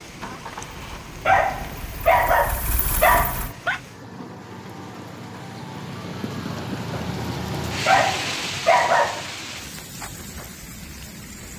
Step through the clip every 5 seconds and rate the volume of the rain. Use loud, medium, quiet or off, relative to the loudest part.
medium, loud, medium.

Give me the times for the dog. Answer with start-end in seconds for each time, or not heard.
1.2-3.8, 7.8-9.2.